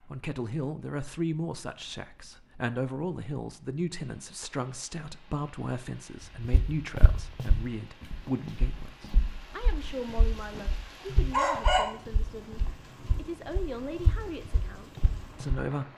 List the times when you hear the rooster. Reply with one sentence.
You can hear the rooster from 9.8 to 10.6 s and from 11.3 to 11.8 s.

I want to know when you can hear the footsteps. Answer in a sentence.
The footsteps can be heard from 6.5 to 15.7 s.